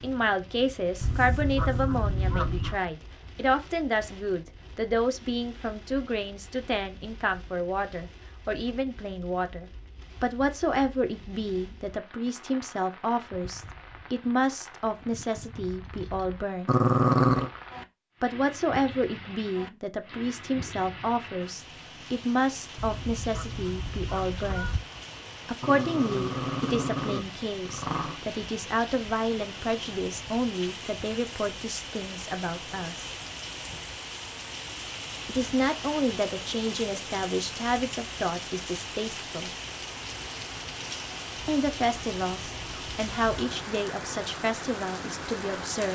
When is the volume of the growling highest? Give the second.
17 s.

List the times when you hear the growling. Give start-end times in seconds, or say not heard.
16.6-17.5, 25.6-28.2.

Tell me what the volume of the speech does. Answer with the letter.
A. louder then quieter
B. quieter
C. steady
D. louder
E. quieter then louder
C.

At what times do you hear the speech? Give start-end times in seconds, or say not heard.
0.0-16.8, 18.2-24.8, 25.4-33.1, 35.2-39.5, 41.5-45.8.